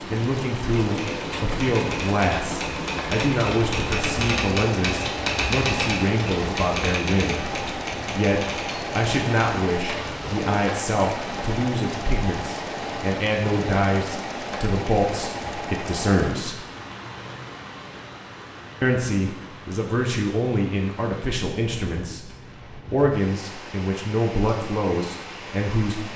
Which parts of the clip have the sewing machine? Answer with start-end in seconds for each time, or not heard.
0.0-16.4.